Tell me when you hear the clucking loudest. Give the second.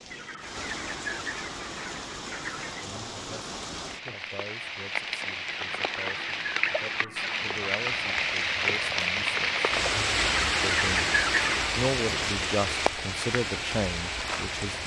11 s.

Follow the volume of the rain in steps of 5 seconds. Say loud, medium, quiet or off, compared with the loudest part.
medium, loud, loud.